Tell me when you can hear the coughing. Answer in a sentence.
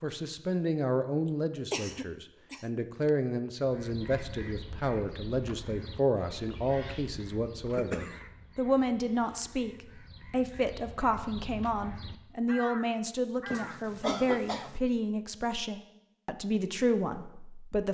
The coughing can be heard from 1.2 to 3.1 s, from 7.7 to 8.2 s and from 13.4 to 14.8 s.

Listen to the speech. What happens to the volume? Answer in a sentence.
The volume of the speech stays about the same.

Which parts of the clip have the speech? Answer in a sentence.
You can hear the speech from 0.0 to 17.9 s.